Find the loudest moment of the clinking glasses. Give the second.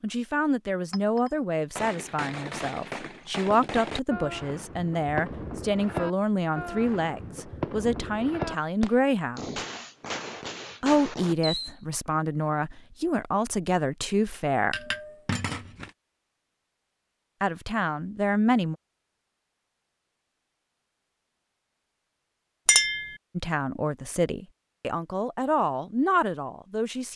23 s.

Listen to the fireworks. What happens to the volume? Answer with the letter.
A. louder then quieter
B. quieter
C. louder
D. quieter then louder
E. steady
E.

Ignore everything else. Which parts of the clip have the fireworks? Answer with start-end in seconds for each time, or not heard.
1.8-11.8.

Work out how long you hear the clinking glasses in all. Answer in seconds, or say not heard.
2 s.